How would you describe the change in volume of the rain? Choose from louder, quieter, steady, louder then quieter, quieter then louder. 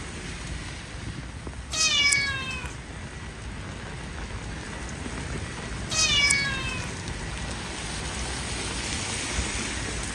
louder.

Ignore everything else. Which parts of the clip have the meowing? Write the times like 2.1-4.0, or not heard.
1.7-2.8, 5.9-7.0.